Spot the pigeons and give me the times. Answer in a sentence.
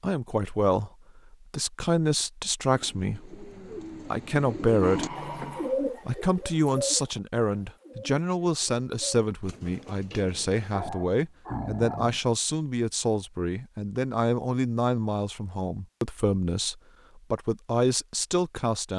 The pigeons can be heard from 2.7 to 10.8 s.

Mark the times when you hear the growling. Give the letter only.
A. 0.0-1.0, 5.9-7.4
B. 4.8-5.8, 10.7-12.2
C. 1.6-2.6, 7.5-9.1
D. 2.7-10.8
B.